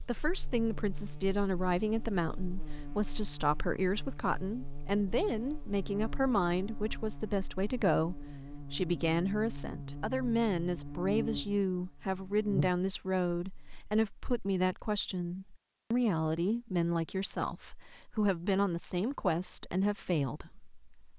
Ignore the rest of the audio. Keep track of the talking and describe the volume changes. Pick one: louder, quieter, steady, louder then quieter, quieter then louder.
steady.